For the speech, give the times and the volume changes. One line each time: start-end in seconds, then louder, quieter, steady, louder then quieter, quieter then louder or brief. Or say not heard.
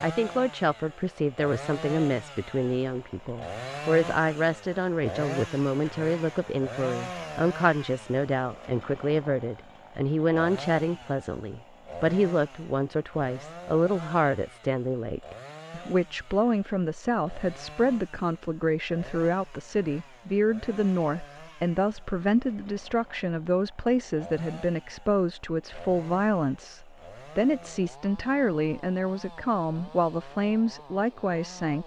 0.0-31.8 steady.